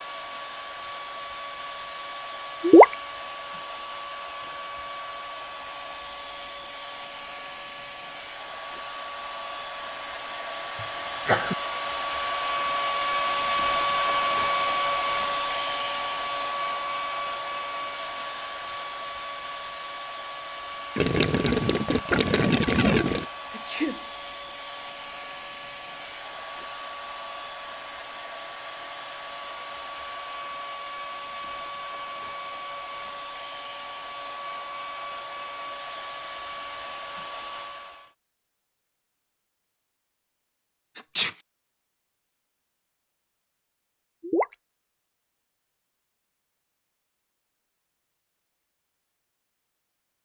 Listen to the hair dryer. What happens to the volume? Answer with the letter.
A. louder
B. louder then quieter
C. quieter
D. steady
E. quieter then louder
B.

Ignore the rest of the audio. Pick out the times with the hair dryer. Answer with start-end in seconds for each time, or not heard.
0.0-38.1.